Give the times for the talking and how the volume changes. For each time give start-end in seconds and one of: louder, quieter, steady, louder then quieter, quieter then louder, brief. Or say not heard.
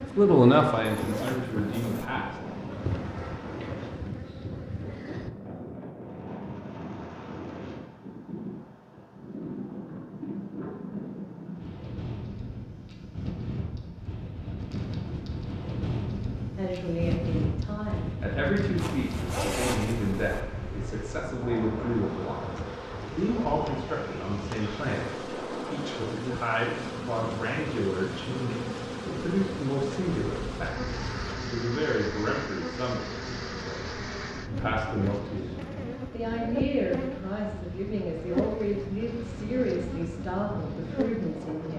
0.1-2.4 brief
16.6-41.7 steady.